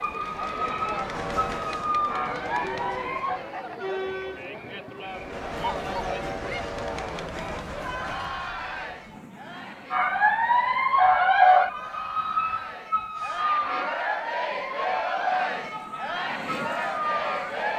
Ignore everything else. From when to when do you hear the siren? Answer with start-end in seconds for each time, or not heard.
0.0-3.4, 9.9-17.7.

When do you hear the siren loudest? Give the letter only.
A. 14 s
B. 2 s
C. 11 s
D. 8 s
C.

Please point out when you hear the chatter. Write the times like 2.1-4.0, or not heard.
0.0-17.7.